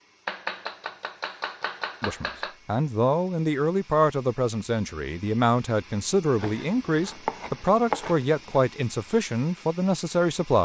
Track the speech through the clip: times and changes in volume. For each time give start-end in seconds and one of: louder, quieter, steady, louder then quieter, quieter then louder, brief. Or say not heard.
2.0-10.6 steady.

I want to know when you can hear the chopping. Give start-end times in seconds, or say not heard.
0.2-2.5, 6.3-8.6.